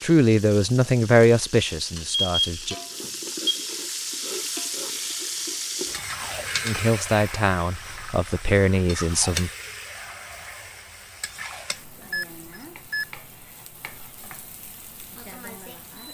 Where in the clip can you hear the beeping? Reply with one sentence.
You can hear the beeping from 2.0 to 3.6 s and from 12.1 to 13.1 s.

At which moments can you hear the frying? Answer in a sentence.
The frying can be heard from 0.0 to 16.0 s.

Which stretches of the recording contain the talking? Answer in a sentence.
You can hear the talking from 0.0 to 2.8 s and from 6.7 to 9.5 s.